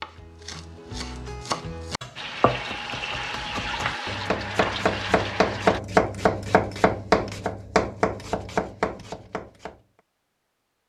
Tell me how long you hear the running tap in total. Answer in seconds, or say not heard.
4 s.